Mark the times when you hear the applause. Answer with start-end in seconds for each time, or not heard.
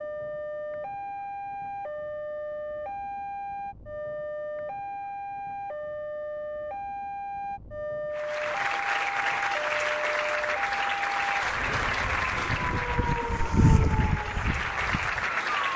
8.1-15.7.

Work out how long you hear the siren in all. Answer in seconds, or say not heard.
16 s.